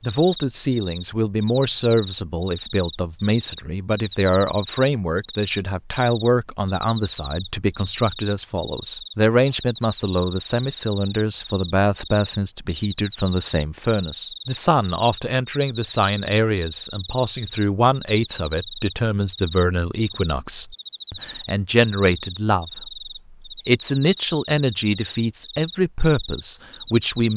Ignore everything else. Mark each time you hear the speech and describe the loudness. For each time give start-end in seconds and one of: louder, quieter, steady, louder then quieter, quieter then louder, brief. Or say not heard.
0.0-27.3 steady.